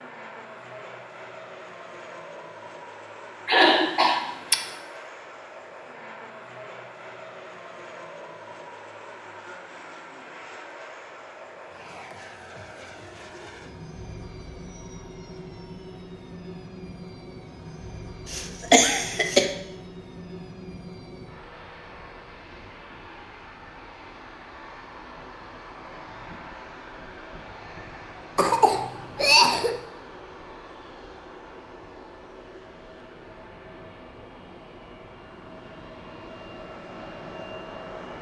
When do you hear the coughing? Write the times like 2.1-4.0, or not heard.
3.5-4.6, 18.2-19.5, 28.4-29.8.